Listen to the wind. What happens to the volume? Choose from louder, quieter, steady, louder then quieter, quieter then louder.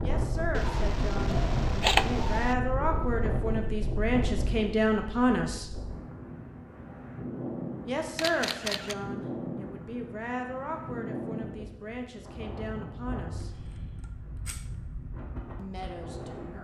quieter.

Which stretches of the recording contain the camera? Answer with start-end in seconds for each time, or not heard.
0.5-2.5, 8.2-8.9, 13.4-14.7.